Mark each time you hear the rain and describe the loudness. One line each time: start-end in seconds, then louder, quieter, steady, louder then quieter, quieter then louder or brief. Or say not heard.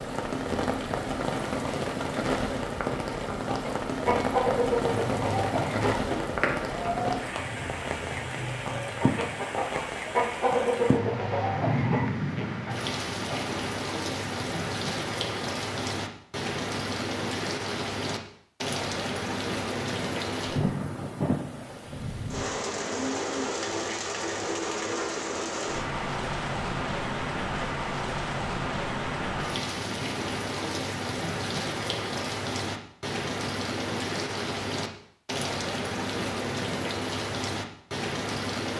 0.0-38.7 steady.